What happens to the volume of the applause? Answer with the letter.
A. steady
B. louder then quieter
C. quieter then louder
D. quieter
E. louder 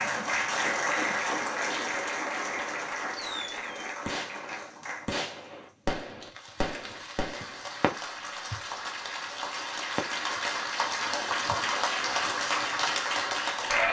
C.